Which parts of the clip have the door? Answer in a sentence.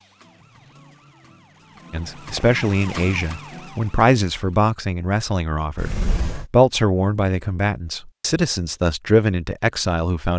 You can hear the door from 2.0 to 2.6 s and from 5.8 to 6.5 s.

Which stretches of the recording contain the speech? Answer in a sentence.
You can hear the speech from 1.9 to 10.3 s.